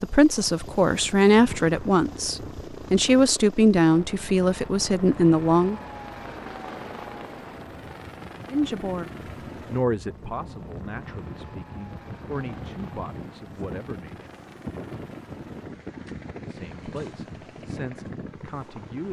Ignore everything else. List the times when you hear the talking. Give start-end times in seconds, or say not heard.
0.0-5.8, 8.5-14.2, 16.4-19.0.